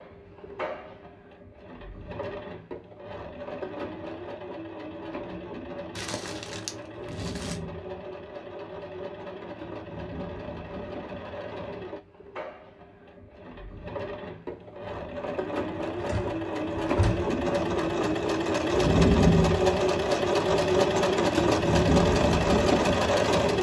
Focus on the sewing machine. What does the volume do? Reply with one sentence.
The volume of the sewing machine goes up.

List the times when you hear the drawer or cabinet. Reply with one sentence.
The drawer or cabinet can be heard from 15.9 to 17.3 s.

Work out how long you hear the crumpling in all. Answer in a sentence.
You can hear the crumpling for 2 seconds altogether.